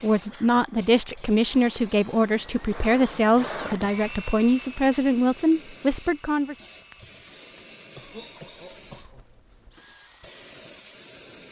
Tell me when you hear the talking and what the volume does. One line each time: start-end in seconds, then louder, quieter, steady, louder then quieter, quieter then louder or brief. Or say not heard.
0.0-6.5 steady.